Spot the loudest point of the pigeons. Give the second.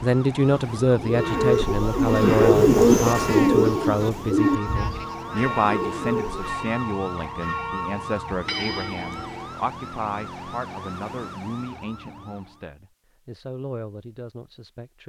3 s.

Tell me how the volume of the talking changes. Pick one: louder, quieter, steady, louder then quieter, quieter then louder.
quieter.